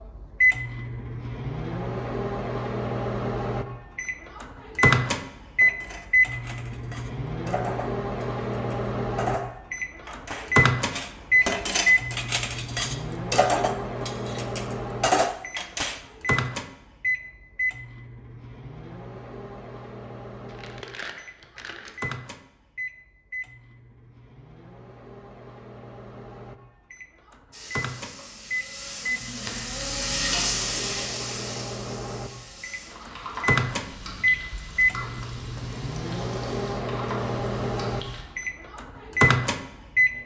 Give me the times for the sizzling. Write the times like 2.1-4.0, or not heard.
27.5-38.2.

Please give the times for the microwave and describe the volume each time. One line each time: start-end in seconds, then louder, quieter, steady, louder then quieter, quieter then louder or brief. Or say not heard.
0.0-40.2 quieter then louder.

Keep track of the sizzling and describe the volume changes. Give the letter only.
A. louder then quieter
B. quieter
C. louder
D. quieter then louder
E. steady
A.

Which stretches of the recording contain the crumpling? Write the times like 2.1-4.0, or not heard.
20.4-21.9.